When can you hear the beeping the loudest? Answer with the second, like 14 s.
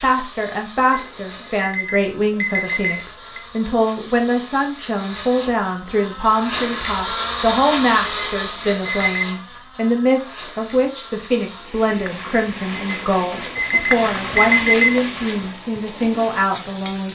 15 s.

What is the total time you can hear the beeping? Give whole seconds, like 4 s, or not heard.
6 s.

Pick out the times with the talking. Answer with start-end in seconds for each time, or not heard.
0.0-17.1.